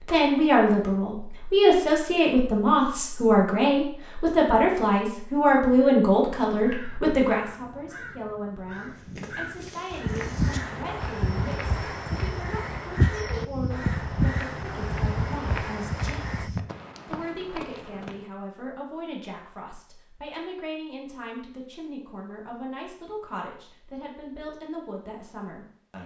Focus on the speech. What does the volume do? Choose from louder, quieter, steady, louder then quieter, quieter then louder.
quieter.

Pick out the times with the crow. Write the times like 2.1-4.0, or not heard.
6.5-16.5.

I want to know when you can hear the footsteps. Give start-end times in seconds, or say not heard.
8.7-18.2.